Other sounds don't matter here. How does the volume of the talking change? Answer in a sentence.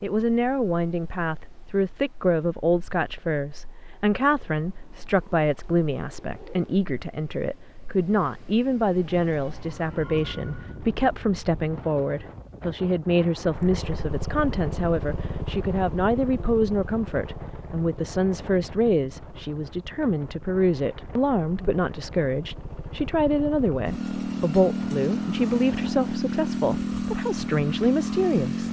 The loudness of the talking stays about the same.